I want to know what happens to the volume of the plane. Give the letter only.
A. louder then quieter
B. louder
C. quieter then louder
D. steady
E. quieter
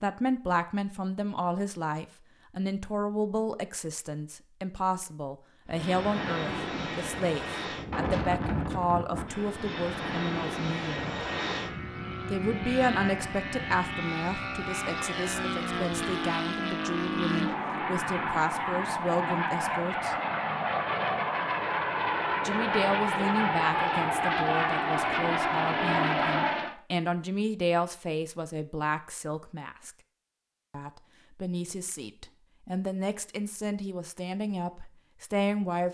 B.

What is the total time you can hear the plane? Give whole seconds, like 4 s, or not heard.
21 s.